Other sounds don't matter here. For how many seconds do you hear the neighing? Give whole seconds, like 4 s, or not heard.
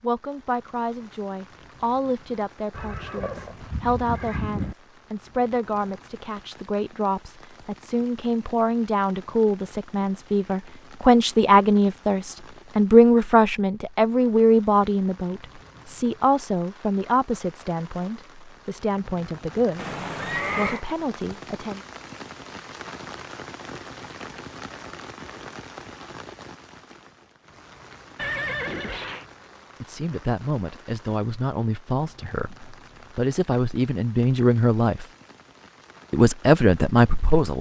4 s.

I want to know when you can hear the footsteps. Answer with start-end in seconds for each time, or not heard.
not heard.